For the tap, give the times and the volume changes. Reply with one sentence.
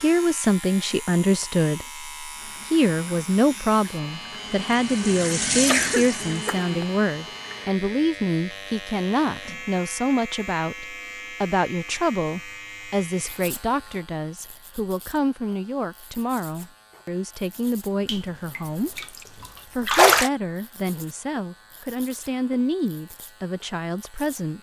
You can hear the tap from 2.3 to 8.1 s, getting louder then quieter; and briefly from 18.1 to 20.3 s.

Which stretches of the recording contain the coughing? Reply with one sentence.
The coughing can be heard from 5.7 to 7.0 s.